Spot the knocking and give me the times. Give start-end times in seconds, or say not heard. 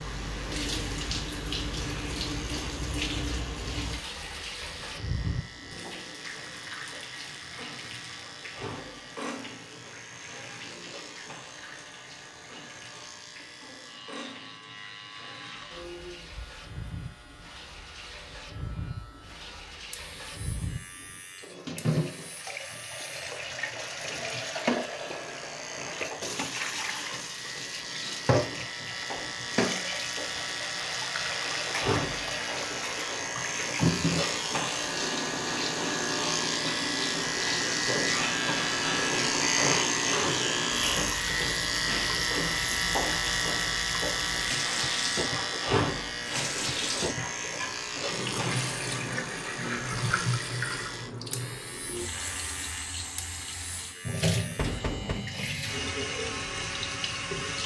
54.5-55.2.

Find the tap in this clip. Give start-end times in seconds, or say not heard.
0.0-57.6.